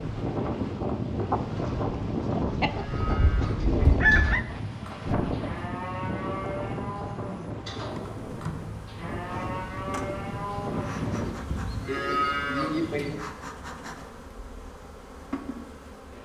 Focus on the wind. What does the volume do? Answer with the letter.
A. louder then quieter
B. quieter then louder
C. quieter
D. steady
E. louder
C.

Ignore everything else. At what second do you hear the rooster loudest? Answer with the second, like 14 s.
4 s.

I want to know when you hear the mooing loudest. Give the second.
12 s.